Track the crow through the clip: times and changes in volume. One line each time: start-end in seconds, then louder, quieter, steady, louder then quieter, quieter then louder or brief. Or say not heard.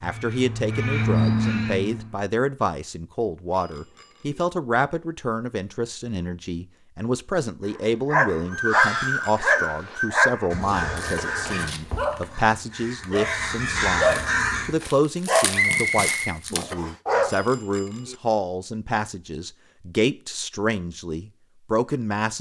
0.0-2.2 brief
8.4-14.8 quieter then louder.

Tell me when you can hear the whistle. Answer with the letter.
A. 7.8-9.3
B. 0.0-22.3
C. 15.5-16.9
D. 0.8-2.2
C.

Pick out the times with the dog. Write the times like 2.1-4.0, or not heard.
8.1-17.3.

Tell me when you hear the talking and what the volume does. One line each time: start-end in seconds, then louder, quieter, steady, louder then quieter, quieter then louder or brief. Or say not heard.
0.0-22.3 steady.